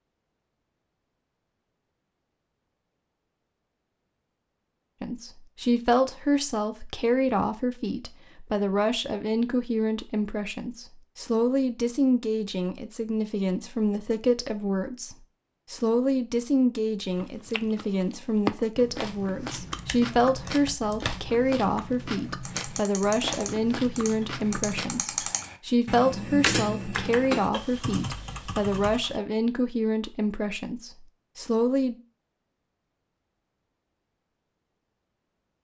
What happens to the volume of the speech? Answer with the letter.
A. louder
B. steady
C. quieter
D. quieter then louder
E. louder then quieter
B.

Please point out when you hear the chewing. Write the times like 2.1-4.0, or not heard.
17.1-25.1.